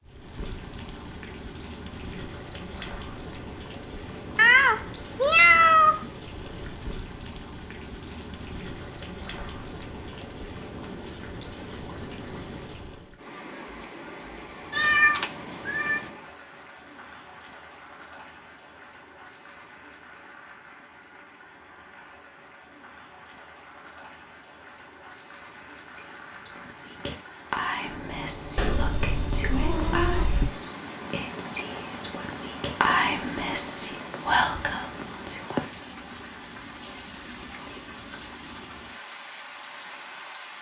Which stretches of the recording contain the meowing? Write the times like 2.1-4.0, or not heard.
4.3-6.0, 14.7-16.1, 28.6-30.6.